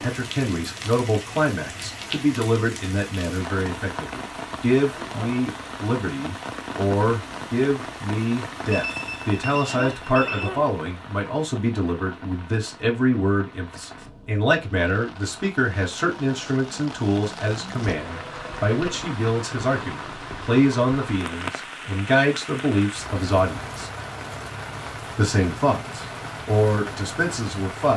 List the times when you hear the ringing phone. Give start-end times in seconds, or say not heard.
8.7-10.5, 18.1-19.1.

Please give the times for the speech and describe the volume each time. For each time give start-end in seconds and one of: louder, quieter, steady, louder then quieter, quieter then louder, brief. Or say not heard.
0.0-23.9 steady
25.1-27.9 brief.